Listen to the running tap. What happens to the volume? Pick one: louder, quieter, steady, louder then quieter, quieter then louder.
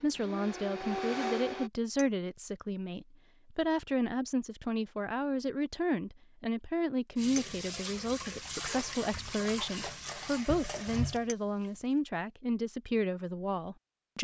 steady.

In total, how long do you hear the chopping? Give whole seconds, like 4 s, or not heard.
not heard.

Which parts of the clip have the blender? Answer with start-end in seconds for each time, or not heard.
0.0-1.7.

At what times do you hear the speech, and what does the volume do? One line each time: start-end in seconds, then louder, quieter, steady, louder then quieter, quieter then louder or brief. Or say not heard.
0.0-14.1 steady.